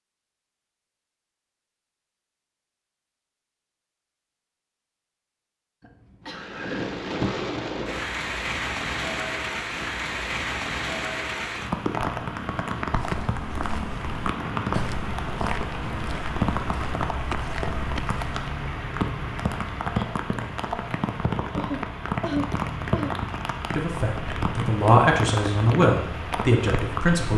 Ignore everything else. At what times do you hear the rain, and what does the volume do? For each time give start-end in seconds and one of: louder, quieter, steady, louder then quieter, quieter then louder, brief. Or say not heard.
6.2-27.3 steady.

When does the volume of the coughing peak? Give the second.
22 s.